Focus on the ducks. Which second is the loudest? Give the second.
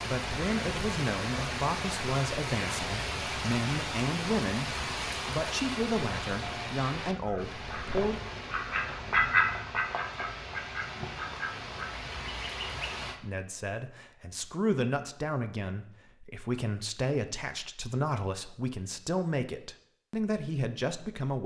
9 s.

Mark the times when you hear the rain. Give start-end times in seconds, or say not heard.
0.0-13.2.